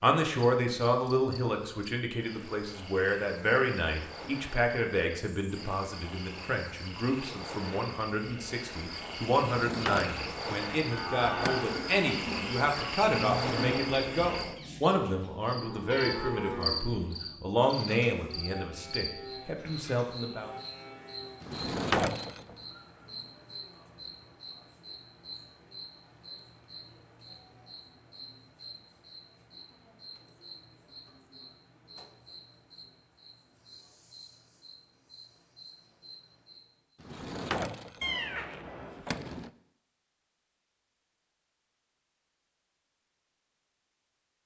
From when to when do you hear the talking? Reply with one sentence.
You can hear the talking from 0.0 to 20.5 s.